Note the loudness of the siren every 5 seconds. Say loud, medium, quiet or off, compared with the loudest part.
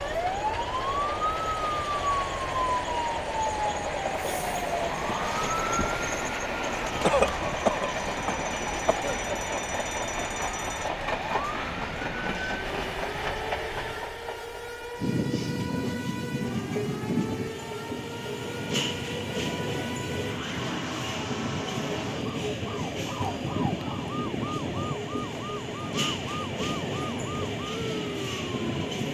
loud, medium, medium, medium, medium, medium.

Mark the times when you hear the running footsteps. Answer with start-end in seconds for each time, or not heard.
not heard.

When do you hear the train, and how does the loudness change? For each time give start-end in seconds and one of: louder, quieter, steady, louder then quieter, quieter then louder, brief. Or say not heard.
0.0-29.0 steady.